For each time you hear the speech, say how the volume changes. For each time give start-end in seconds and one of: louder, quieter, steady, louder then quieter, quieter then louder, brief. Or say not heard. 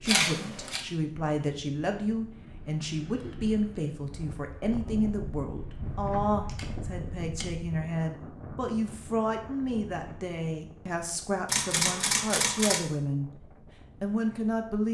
0.0-13.4 steady
14.0-14.8 brief.